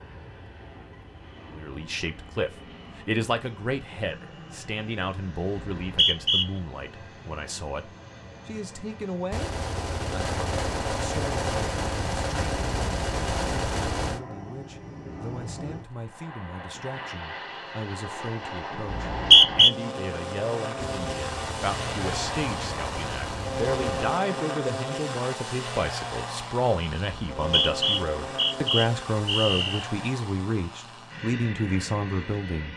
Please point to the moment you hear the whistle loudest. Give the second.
19 s.